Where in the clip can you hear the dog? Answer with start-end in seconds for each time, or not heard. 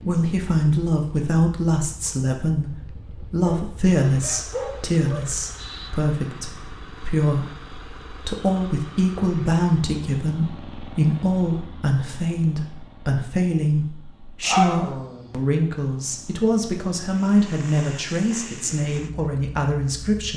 3.5-5.2, 14.4-15.3.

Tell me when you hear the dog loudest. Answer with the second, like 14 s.
15 s.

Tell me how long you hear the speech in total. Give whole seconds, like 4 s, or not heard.
20 s.